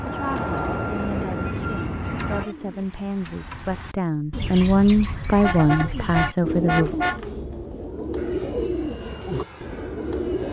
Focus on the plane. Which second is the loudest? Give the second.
1 s.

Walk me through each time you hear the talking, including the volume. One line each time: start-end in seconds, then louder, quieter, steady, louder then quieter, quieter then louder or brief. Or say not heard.
0.0-7.0 louder.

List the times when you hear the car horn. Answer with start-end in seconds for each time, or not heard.
1.4-2.5, 5.3-7.2.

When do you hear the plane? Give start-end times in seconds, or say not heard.
0.0-2.5, 8.2-10.4.